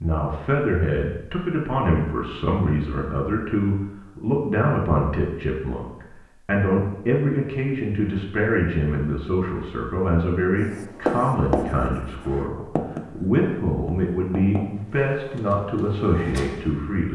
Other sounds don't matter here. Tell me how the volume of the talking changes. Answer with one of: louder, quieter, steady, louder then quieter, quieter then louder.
steady.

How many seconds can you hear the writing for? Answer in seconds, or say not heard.
4 s.